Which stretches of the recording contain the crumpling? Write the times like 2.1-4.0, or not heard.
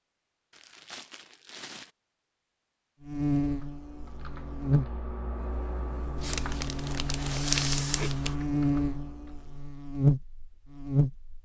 0.5-1.9, 6.2-8.3.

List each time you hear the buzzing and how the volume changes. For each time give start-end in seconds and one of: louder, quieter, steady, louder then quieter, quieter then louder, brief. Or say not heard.
3.0-11.3 quieter then louder.